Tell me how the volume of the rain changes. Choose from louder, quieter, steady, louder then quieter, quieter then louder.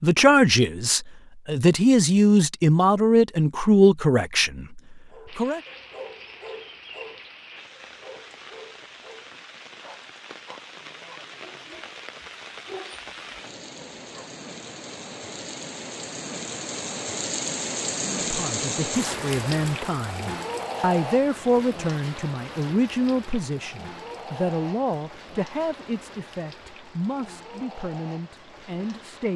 louder then quieter.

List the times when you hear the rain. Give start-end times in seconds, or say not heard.
5.2-29.3.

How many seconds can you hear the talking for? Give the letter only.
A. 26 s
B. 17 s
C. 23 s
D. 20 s
B.